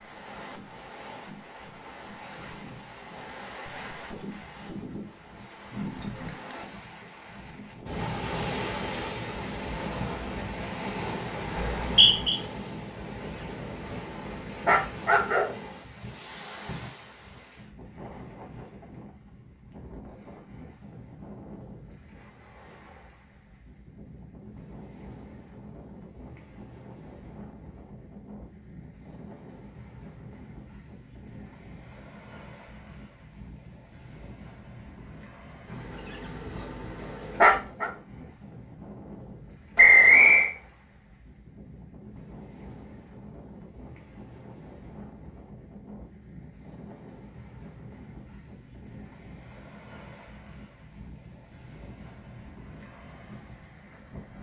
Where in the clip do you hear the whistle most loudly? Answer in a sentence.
The volume of the whistle peaks at 40 seconds.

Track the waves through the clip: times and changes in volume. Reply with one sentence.
You can hear the waves from 0.0 to 54.3 s, getting quieter.